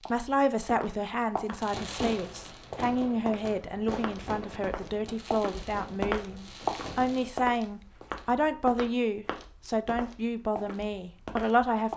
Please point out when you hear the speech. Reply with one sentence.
You can hear the speech from 0.1 to 11.9 s.